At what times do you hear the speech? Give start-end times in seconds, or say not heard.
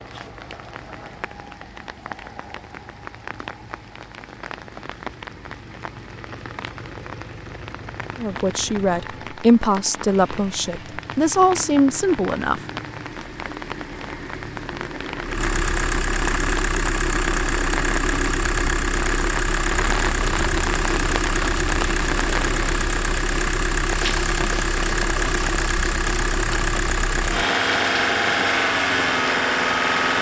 8.2-12.6.